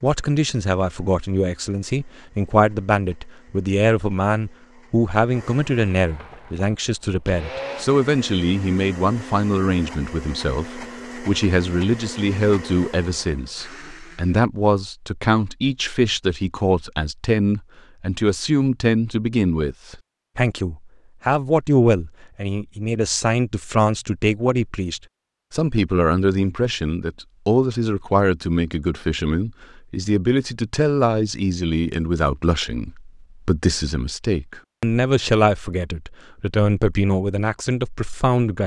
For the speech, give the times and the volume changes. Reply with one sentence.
The speech can be heard from 0.0 to 38.6 s, at a steady volume.